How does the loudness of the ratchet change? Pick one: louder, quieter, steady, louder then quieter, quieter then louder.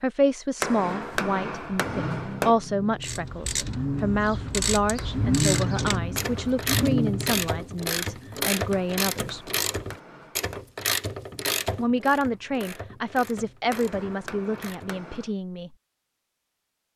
quieter.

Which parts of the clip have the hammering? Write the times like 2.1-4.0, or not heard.
0.6-2.5, 5.0-6.8, 8.7-10.7, 13.7-15.3.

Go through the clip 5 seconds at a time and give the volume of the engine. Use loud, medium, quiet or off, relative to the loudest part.
medium, loud, off, off.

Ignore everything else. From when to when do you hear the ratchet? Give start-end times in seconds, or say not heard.
3.0-15.1.